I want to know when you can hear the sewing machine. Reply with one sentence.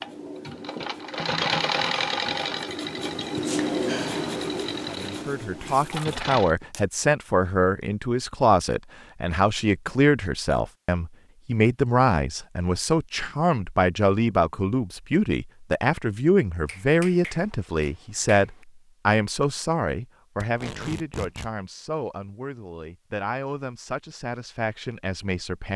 The sewing machine can be heard from 0.0 to 6.5 s.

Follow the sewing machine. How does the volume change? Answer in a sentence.
The loudness of the sewing machine goes down.